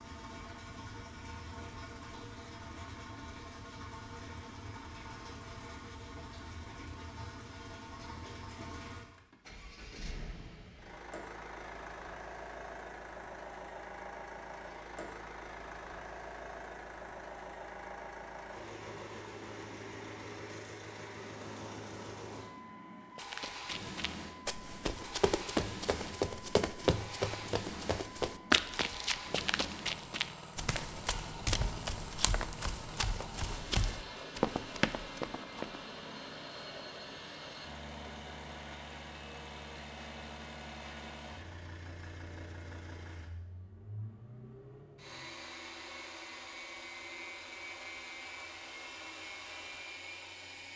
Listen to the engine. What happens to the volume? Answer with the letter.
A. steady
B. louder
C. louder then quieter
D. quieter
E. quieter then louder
A.